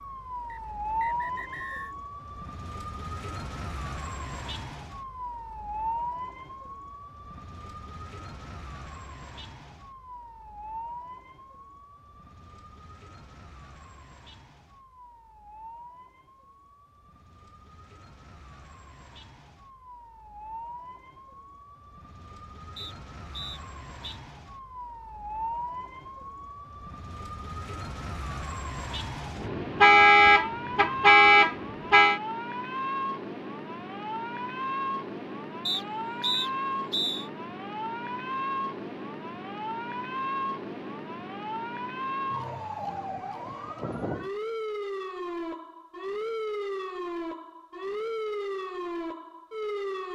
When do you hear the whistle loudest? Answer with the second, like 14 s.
36 s.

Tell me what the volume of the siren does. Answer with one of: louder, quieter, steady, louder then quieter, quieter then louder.
quieter then louder.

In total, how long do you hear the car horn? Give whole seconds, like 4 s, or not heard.
3 s.